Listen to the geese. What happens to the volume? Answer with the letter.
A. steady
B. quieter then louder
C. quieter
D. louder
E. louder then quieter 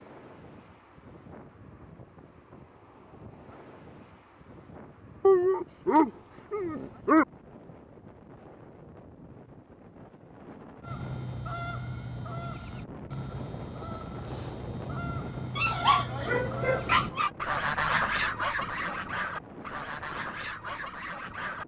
E.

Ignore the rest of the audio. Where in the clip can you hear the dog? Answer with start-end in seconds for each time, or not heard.
5.2-7.2, 15.6-17.3.